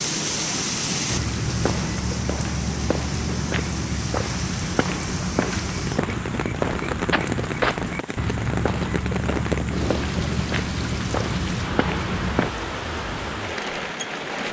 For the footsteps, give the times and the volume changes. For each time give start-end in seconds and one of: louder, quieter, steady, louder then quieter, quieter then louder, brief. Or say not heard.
1.1-12.5 steady.